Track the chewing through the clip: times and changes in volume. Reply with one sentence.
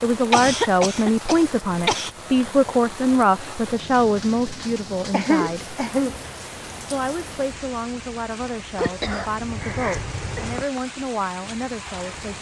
The chewing can't be heard in this clip.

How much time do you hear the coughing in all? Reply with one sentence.
The coughing can be heard for 5 seconds in total.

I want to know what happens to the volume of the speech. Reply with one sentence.
The volume of the speech goes down.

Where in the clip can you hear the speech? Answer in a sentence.
The speech can be heard from 0.0 to 5.8 s and from 6.8 to 12.3 s.